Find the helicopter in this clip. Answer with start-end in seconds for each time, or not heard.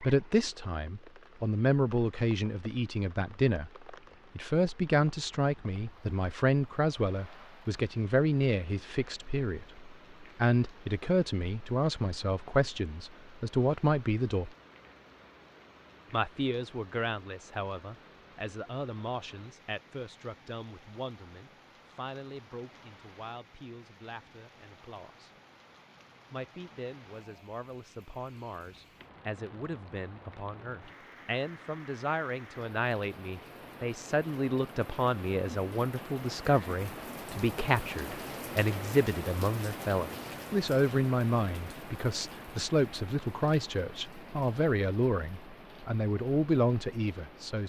not heard.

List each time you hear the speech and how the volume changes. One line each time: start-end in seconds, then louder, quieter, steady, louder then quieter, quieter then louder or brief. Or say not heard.
0.0-14.6 steady
16.1-25.3 quieter
26.3-47.6 louder.